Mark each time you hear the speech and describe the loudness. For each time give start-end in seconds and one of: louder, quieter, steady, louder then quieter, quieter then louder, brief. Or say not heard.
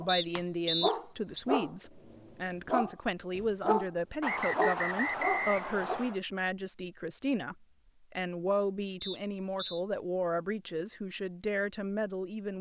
0.0-12.5 steady.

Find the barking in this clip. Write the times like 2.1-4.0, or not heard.
0.0-3.9, 4.5-6.0.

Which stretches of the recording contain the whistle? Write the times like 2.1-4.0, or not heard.
0.1-1.4, 4.2-6.2, 9.0-9.8.